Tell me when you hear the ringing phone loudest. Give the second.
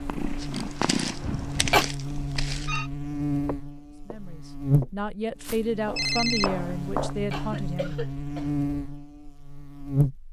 6 s.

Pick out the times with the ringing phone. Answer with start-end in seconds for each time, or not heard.
2.1-2.9, 6.0-6.5.